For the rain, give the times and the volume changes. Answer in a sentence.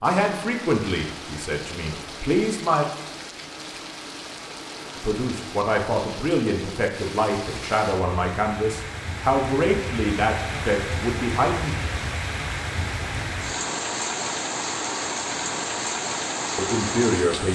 The rain can be heard from 0.0 to 17.5 s, getting louder.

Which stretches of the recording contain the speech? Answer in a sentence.
You can hear the speech from 0.0 to 2.9 s, from 5.0 to 11.8 s and from 16.6 to 17.5 s.